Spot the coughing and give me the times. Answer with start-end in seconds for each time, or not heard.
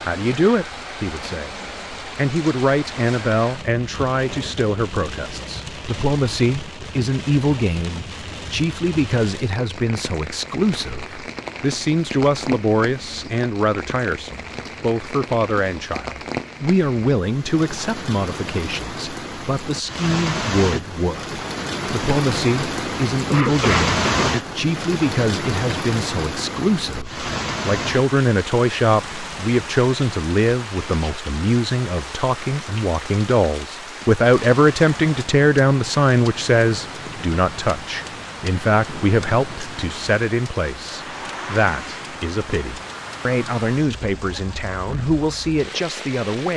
23.2-24.4.